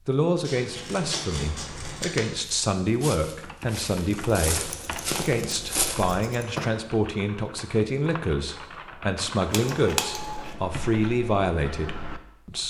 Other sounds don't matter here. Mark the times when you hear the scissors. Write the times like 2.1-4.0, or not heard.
0.4-2.3, 4.5-6.5, 9.5-10.6.